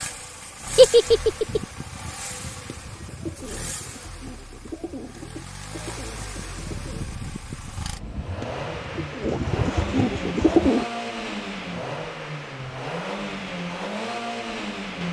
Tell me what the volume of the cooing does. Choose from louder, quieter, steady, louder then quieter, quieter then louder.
louder.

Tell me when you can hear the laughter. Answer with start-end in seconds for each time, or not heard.
0.8-1.6.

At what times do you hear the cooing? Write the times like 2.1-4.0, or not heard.
1.4-10.8.